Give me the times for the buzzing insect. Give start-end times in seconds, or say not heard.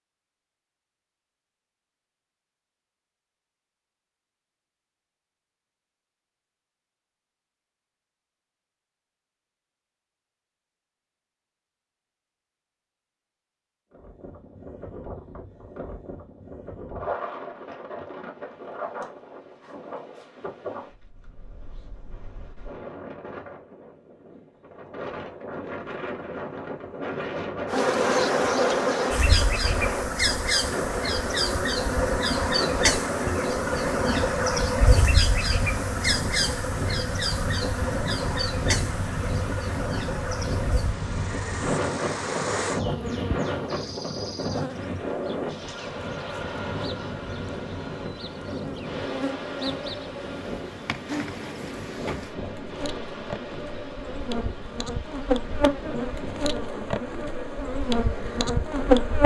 27.6-59.2.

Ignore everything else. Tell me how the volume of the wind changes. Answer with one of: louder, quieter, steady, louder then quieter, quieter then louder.
louder then quieter.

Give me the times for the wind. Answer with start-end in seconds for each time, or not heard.
13.9-59.1.